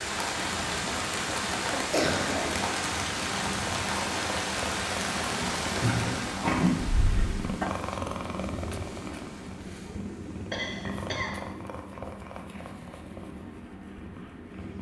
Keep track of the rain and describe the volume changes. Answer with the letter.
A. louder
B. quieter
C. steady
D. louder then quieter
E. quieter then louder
B.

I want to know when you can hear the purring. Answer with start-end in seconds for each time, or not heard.
0.1-14.7.